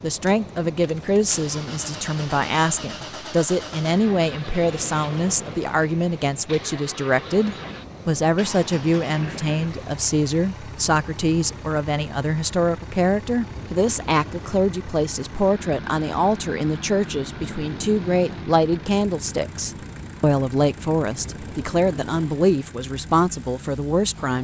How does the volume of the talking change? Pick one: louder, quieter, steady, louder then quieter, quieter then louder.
steady.